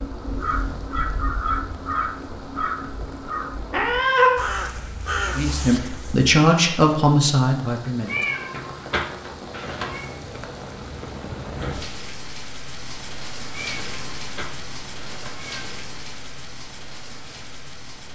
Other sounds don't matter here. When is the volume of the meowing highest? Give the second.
4 s.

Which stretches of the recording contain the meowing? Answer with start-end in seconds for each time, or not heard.
3.7-4.4, 8.1-10.1, 13.5-15.7.